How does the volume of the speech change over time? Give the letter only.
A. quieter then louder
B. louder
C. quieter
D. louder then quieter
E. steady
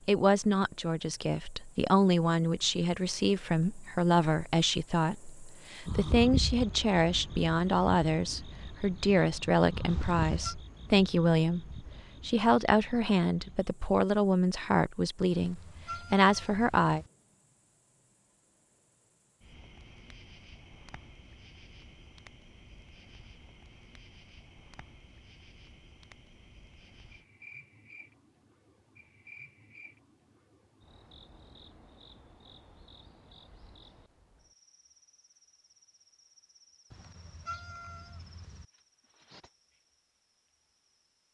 E.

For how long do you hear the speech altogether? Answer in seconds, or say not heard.
17 s.